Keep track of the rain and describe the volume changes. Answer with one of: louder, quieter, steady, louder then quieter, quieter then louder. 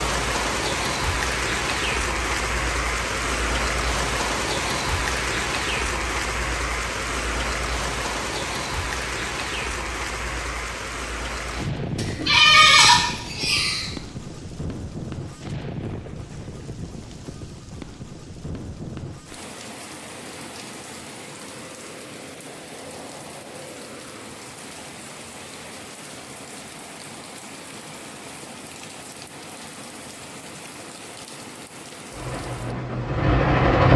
quieter.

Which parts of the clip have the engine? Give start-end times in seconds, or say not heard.
32.1-33.9.